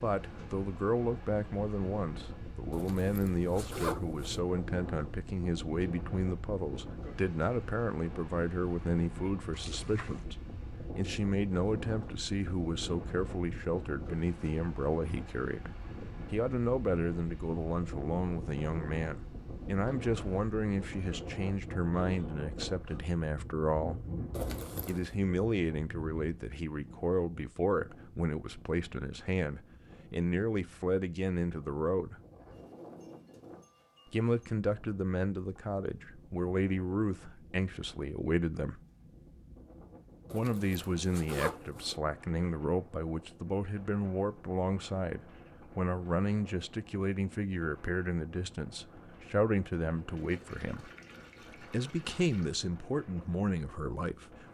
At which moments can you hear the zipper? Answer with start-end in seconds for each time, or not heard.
2.7-4.4, 24.3-25.1, 40.3-42.0.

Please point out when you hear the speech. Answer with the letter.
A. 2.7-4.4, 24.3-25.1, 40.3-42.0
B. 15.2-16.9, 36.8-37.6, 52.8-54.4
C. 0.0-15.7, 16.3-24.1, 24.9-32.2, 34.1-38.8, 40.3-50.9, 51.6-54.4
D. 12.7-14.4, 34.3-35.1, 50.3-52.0
C.